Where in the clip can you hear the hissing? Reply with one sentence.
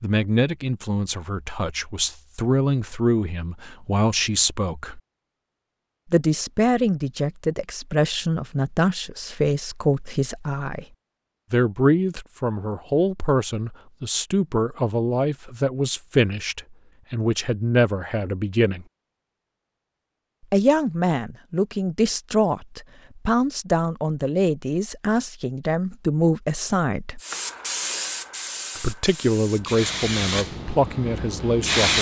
You can hear the hissing from 27.2 to 31.9 s.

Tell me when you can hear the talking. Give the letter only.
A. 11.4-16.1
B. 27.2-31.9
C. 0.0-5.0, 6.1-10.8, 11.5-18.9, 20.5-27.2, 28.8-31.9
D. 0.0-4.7
C.